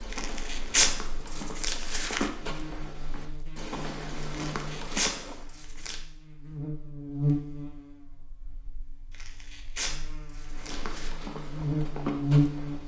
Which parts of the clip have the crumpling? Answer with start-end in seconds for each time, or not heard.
0.1-2.3, 4.5-6.0, 9.1-11.1.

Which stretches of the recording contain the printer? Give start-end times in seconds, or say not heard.
not heard.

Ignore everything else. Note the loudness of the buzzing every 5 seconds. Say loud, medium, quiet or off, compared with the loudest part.
quiet, medium, loud.